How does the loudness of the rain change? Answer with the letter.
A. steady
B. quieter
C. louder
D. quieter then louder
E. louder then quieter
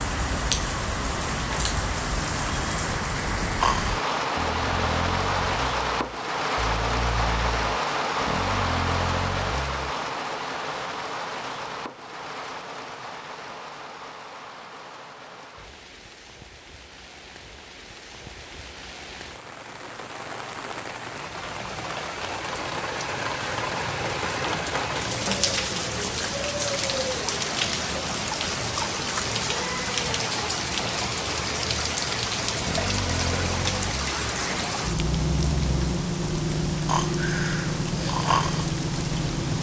D.